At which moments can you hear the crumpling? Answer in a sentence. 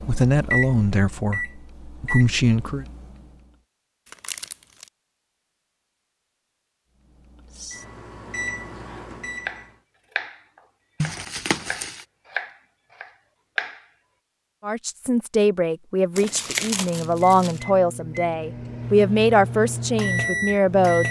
You can hear the crumpling from 4.0 to 4.9 s, from 11.0 to 12.1 s and from 16.1 to 17.6 s.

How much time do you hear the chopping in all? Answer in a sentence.
You can hear the chopping for 5 seconds altogether.